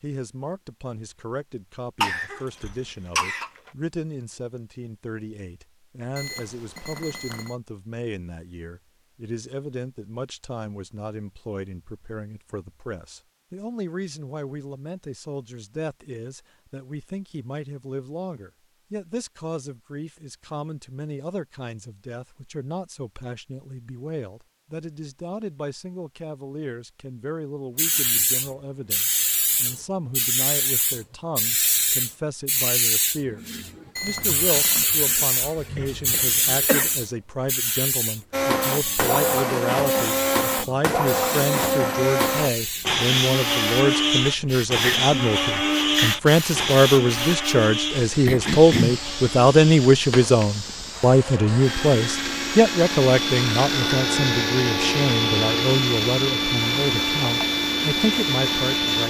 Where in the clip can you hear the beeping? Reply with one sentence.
The beeping can be heard from 6.2 to 7.5 s and from 34.0 to 35.0 s.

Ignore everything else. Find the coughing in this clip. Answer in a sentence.
You can hear the coughing from 2.0 to 3.5 s, from 35.8 to 37.0 s and from 48.2 to 49.0 s.